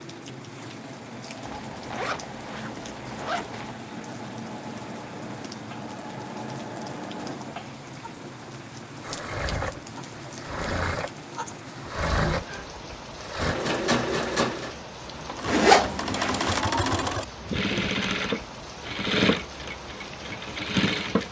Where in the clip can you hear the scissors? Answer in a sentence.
You can't hear the scissors here.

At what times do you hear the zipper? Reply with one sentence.
The zipper can be heard from 1.6 to 3.8 s and from 15.4 to 16.6 s.